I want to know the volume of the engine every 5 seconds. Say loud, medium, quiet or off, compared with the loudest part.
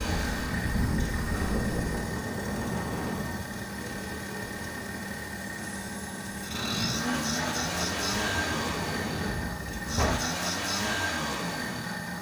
medium, loud, loud.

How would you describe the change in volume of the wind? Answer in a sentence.
The loudness of the wind goes down, then up.